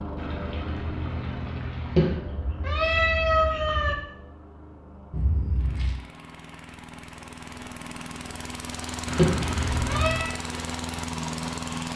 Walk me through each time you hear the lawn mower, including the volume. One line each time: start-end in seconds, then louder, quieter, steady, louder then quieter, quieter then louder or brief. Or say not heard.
0.0-11.9 quieter then louder.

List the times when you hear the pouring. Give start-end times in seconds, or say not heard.
0.1-2.2, 5.1-6.0, 9.1-10.1.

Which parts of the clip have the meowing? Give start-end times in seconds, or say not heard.
1.9-4.0, 9.2-10.2.